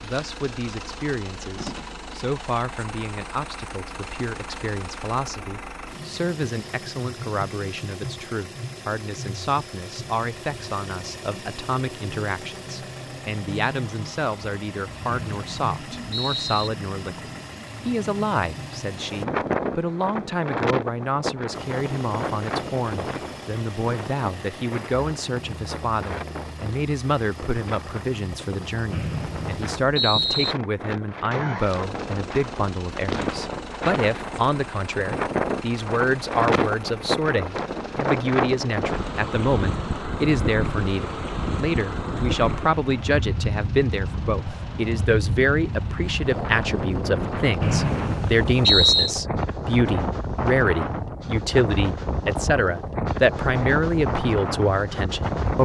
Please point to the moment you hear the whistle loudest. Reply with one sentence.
The volume of the whistle peaks at 49 seconds.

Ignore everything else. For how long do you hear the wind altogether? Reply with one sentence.
The wind can be heard for 37 seconds in total.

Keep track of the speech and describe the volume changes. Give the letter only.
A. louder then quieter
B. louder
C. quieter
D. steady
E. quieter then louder
B.